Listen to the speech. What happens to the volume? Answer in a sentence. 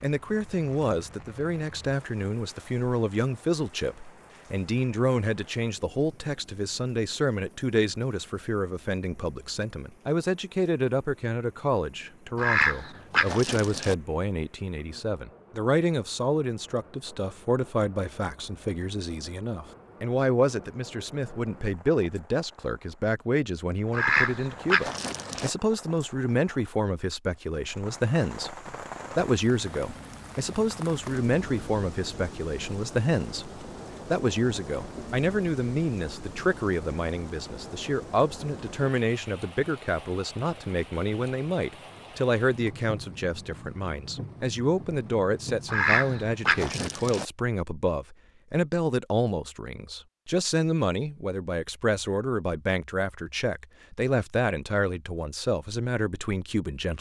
The volume of the speech stays about the same.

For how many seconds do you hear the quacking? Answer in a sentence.
You can hear the quacking for 5 seconds altogether.